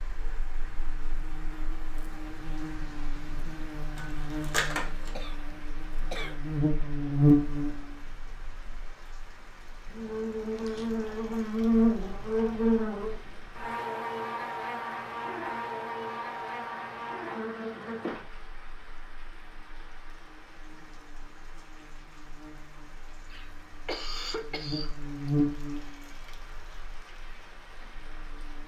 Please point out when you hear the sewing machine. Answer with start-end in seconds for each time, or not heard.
not heard.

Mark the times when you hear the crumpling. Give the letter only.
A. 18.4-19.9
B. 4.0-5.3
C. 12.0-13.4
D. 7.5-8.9
B.